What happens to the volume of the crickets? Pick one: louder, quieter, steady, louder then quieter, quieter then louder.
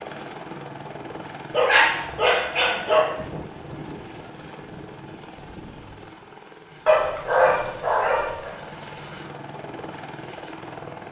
quieter.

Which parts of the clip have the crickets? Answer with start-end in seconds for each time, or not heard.
5.3-11.0.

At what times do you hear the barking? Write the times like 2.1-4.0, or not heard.
1.5-3.0, 6.8-8.5.